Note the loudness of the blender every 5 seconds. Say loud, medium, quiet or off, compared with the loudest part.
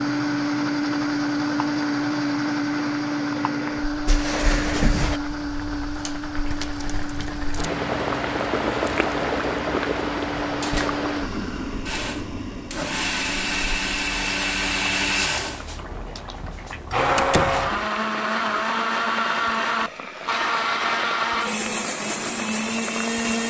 loud, medium, loud, loud, loud.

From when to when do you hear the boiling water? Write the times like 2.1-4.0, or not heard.
0.0-23.3.